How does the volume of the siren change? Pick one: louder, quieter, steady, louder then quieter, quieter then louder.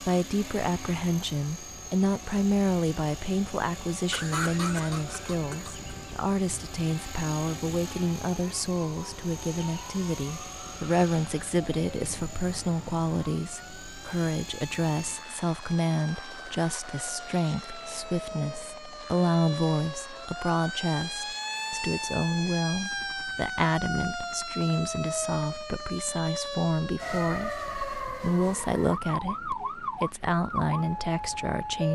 louder.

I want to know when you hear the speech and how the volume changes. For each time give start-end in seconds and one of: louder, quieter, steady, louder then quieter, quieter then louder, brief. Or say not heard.
0.0-31.9 steady.